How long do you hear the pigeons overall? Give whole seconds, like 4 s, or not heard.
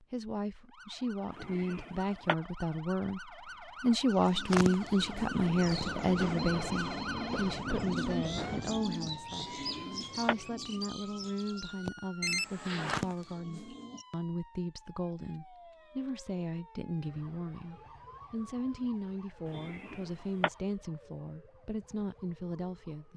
10 s.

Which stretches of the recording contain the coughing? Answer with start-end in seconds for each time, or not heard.
1.3-2.4, 9.3-10.3, 19.4-20.5.